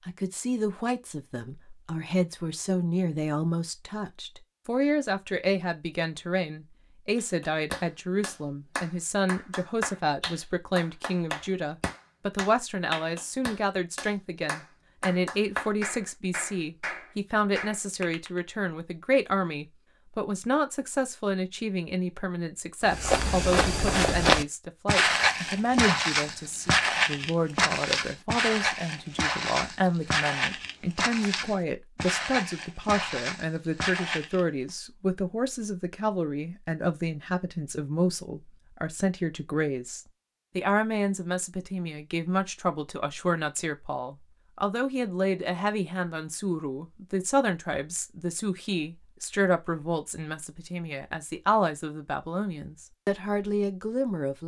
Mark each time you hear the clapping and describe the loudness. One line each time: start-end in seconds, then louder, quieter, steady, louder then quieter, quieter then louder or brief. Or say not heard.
7.2-18.4 steady.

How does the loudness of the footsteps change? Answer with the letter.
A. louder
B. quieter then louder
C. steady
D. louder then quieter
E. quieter
E.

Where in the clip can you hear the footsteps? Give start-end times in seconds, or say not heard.
22.9-34.4.